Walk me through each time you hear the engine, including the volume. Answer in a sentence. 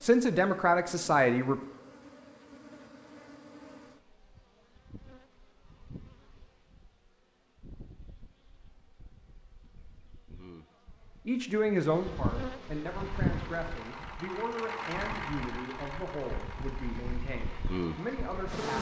The engine can be heard from 12.8 to 18.6 s, getting louder then quieter.